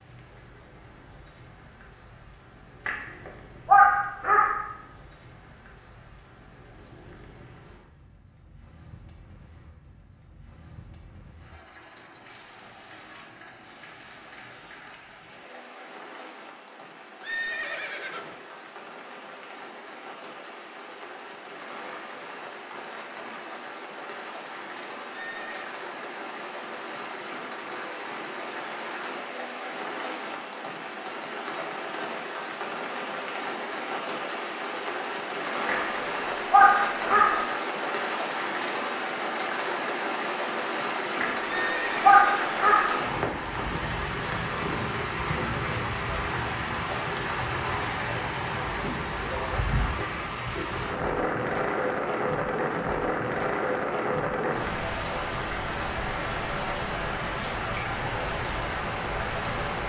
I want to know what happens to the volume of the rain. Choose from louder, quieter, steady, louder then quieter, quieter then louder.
louder.